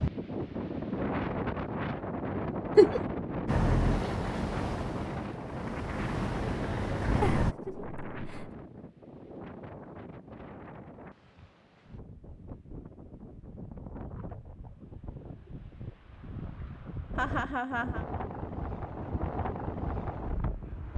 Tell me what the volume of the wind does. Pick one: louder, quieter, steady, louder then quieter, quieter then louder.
quieter then louder.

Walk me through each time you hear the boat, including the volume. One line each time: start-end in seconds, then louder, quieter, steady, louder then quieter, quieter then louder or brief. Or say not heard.
3.5-7.5 quieter then louder.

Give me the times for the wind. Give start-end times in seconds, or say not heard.
0.0-20.9.